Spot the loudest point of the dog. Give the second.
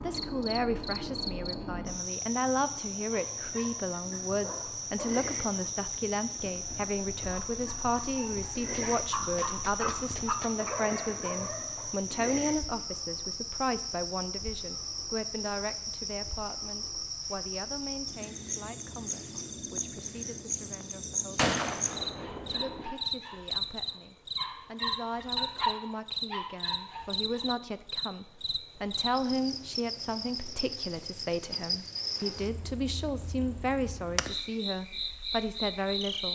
26 s.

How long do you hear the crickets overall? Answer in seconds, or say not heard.
36 s.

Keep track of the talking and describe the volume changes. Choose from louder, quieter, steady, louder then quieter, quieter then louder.
quieter then louder.